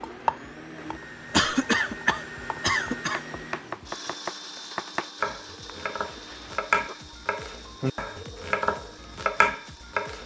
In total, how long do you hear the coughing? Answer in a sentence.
The coughing can be heard for 3 seconds in total.